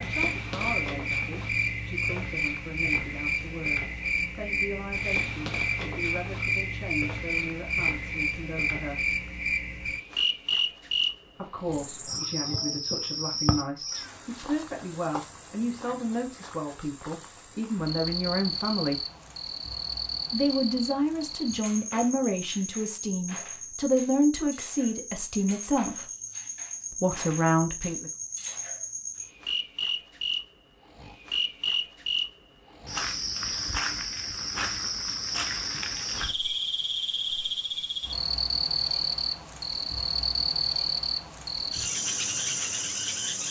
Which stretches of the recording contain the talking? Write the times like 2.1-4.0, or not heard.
0.0-9.1, 11.3-19.0, 20.3-26.1, 26.9-28.1.